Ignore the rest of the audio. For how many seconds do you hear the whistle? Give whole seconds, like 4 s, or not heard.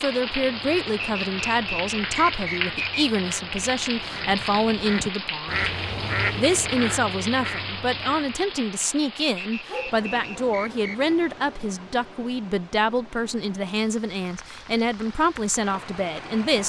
4 s.